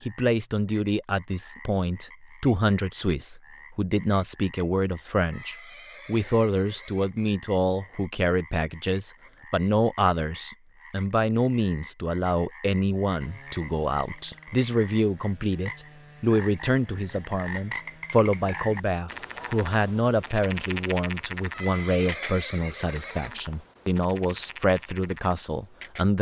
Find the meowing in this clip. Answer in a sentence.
You can't hear the meowing here.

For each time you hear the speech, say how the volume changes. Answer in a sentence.
The speech can be heard from 0.1 to 26.1 s, at a steady volume.